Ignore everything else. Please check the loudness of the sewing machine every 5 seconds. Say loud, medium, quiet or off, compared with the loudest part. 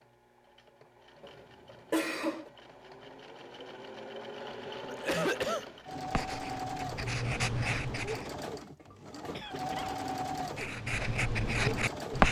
medium, loud, loud.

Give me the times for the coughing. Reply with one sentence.
You can hear the coughing from 1.2 to 2.5 s, from 4.5 to 5.7 s and from 9.3 to 9.9 s.